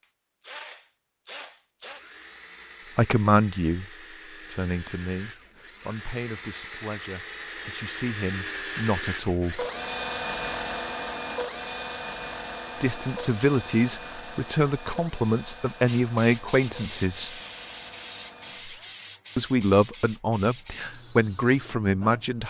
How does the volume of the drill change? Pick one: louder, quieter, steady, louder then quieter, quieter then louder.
louder then quieter.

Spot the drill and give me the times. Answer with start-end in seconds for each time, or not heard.
0.0-18.9.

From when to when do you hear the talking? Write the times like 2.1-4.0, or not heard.
3.0-9.7, 12.8-17.4, 19.4-22.4.